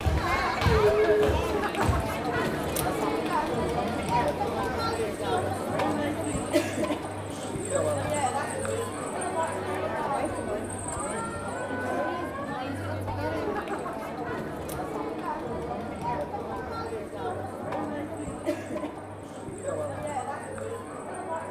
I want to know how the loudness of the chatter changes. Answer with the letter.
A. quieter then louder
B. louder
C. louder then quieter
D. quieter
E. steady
D.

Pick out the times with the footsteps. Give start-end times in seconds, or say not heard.
0.0-2.0.